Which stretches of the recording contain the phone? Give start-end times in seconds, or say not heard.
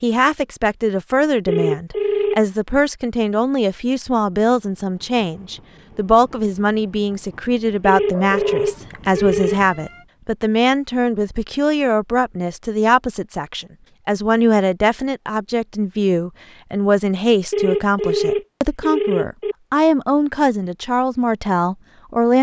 1.4-2.4, 7.8-9.6, 17.5-19.6.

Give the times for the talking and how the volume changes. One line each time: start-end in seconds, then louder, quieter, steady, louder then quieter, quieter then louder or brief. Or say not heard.
0.0-22.3 steady.